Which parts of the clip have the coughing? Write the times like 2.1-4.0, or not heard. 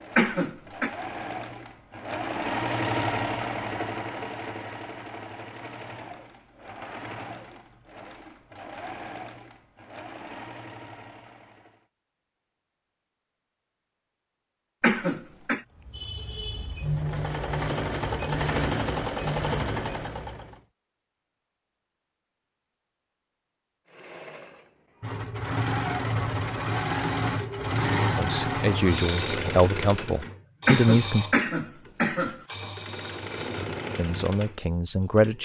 0.1-0.9, 14.8-15.6, 30.6-32.4.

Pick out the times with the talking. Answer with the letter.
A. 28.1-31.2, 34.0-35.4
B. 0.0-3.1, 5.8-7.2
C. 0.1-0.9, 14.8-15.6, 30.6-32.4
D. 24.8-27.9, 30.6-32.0
A.